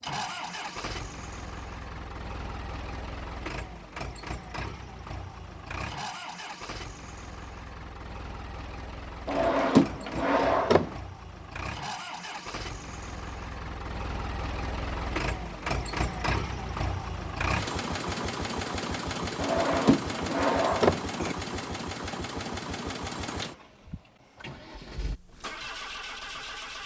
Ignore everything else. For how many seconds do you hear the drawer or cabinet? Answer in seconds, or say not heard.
4 s.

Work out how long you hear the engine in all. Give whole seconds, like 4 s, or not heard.
27 s.